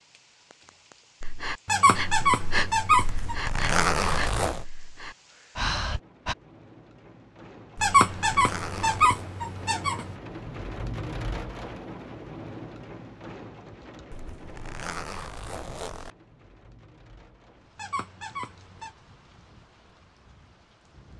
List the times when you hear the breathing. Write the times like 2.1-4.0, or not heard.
1.2-6.3.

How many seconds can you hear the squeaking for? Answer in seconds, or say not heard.
5 s.